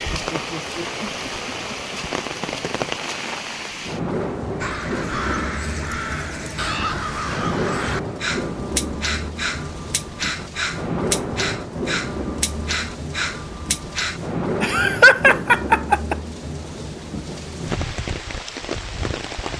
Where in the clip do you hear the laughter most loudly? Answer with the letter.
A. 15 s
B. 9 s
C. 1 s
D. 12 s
A.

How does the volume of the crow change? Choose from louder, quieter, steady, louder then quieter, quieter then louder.
steady.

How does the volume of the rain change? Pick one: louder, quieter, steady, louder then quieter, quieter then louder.
steady.